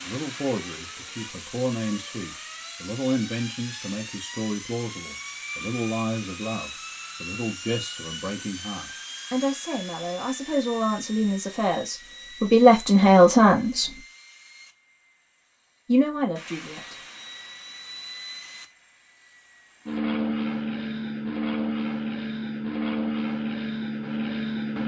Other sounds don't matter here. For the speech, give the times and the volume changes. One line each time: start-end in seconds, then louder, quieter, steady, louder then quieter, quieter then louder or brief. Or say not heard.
0.0-14.0 louder
15.8-17.1 brief.